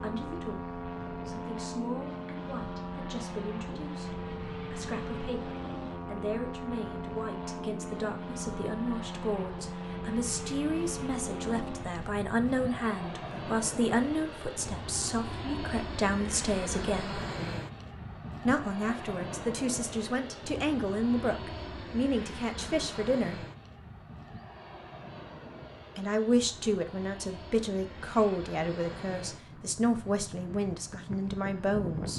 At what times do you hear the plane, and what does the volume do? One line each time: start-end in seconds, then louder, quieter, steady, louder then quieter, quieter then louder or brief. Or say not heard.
0.0-32.1 quieter.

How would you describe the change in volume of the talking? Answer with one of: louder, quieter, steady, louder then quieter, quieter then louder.
louder.